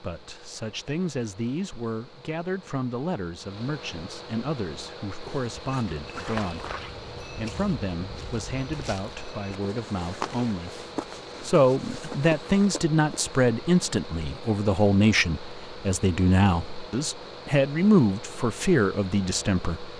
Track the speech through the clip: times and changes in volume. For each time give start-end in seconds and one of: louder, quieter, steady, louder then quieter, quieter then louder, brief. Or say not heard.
0.0-19.9 louder.